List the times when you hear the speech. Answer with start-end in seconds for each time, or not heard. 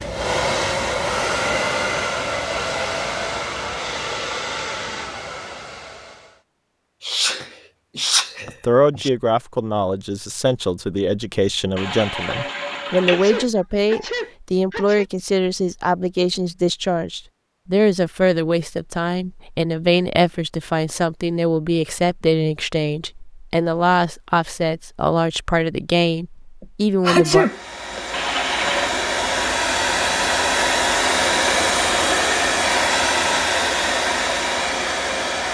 8.4-27.4.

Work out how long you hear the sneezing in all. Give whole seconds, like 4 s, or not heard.
5 s.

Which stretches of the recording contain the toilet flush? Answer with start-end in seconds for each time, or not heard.
11.8-13.4, 28.1-28.9.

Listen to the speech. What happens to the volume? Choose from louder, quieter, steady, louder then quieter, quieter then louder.
steady.